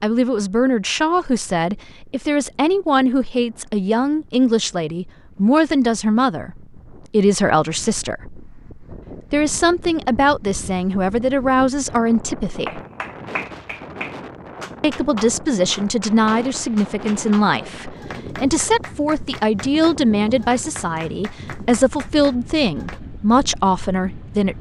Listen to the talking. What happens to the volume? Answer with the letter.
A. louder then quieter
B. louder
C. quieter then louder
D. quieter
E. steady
E.